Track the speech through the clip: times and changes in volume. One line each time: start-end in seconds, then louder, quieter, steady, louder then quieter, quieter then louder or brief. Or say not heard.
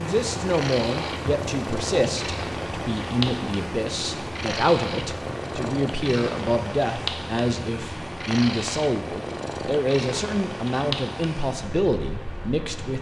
0.0-12.9 steady.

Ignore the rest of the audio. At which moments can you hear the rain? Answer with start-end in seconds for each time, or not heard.
0.0-12.9.